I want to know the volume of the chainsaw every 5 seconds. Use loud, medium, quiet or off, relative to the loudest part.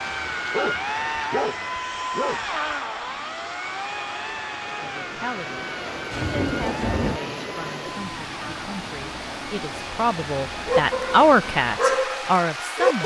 loud, medium, medium.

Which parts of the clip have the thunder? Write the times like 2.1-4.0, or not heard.
6.1-7.2.